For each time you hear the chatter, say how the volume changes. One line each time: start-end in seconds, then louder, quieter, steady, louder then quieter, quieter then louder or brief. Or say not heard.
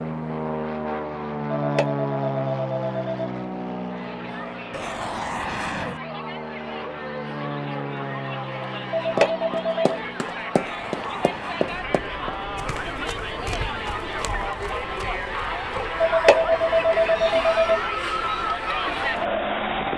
3.8-19.9 louder.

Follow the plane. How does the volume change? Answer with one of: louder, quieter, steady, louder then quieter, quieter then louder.
quieter.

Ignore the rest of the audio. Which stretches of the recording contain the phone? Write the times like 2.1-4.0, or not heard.
1.6-3.3, 8.9-9.9, 16.0-17.8.